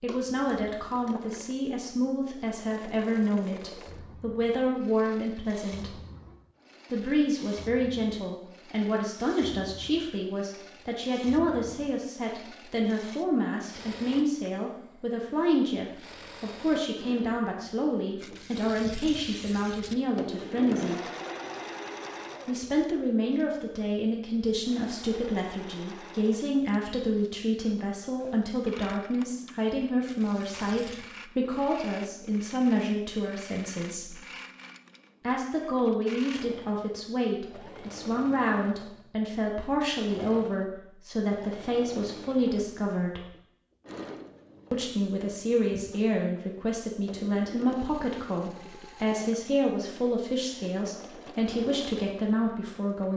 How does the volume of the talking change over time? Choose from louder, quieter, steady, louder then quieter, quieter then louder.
steady.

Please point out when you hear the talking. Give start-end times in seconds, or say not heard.
0.0-6.0, 6.9-21.0, 22.4-34.2, 35.2-43.2, 44.7-53.1.